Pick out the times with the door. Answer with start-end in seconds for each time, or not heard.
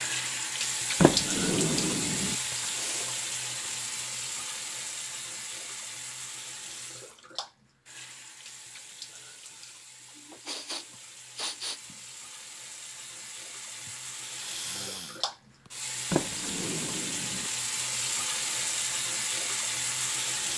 1.0-2.4, 16.1-17.5.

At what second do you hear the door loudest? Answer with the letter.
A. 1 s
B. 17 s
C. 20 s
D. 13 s
A.